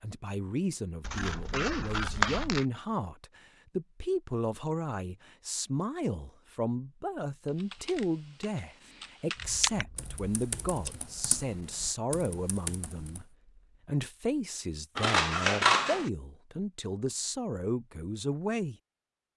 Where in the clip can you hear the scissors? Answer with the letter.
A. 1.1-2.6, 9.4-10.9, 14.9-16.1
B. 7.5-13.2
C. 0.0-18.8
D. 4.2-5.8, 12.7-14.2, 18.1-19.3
A.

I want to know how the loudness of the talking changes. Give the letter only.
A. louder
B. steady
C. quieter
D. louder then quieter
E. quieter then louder
B.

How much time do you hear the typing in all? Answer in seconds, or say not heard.
6 s.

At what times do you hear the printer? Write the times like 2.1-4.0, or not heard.
not heard.